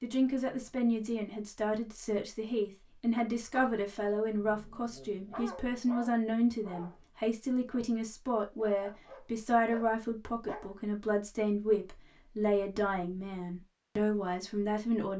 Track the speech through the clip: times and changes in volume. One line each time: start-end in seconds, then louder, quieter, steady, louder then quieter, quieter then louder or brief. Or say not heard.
0.0-15.1 steady.